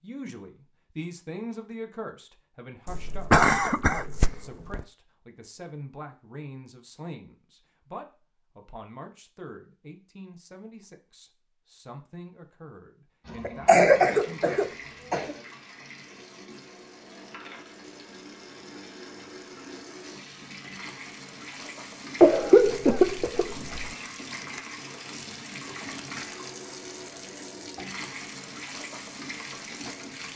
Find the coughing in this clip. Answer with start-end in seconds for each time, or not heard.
2.9-4.8, 13.4-15.3, 22.2-23.9.